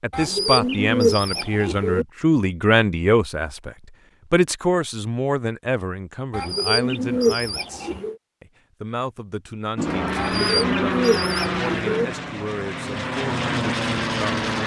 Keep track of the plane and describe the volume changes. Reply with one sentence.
The loudness of the plane goes down, then up.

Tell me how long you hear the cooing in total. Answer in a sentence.
You can hear the cooing for 6 seconds altogether.